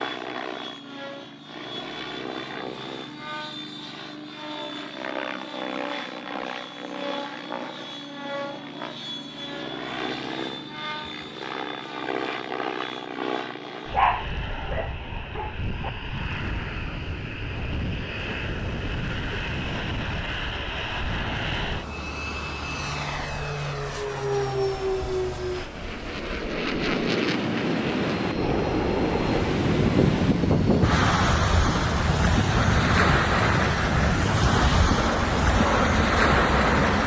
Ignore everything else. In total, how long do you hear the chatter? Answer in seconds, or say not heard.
not heard.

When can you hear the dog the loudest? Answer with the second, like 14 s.
14 s.